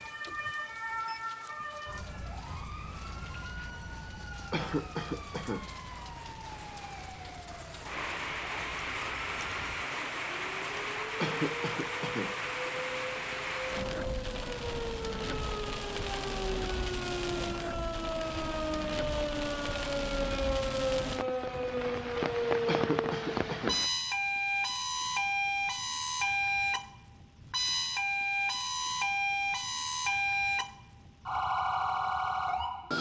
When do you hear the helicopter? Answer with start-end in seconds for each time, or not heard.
not heard.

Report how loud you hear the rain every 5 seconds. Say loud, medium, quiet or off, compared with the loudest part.
quiet, loud, loud, loud, loud, off, off.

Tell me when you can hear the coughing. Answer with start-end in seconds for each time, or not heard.
4.5-5.7, 11.2-12.8, 22.6-23.8.